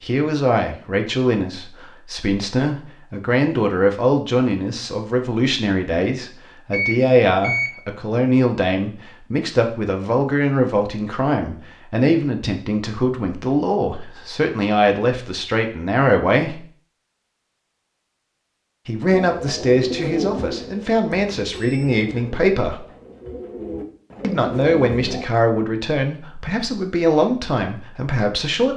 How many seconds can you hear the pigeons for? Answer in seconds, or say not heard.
6 s.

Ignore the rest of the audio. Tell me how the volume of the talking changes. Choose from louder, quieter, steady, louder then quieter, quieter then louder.
steady.